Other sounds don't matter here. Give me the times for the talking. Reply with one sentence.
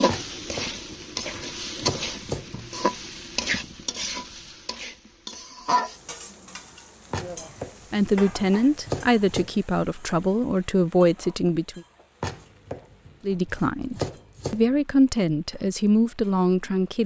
You can hear the talking from 7.9 to 11.8 s and from 13.2 to 17.0 s.